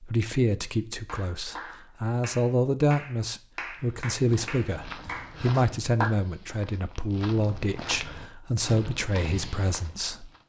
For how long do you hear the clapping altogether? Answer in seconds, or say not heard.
5 s.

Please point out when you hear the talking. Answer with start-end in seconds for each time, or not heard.
0.0-10.3.